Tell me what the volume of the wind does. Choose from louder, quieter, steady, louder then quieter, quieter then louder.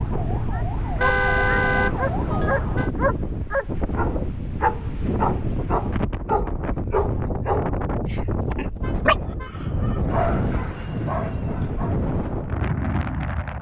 steady.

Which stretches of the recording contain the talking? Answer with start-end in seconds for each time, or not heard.
not heard.